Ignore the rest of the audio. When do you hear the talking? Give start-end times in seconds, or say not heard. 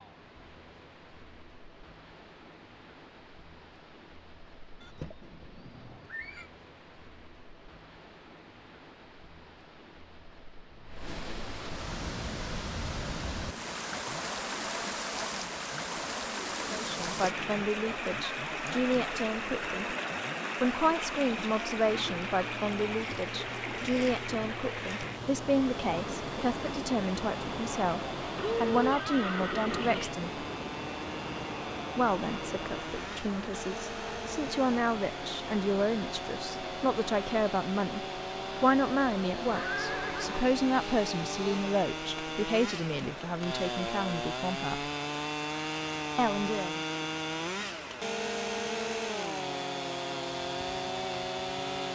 16.7-19.9, 20.6-30.4, 31.9-44.9, 46.1-46.8.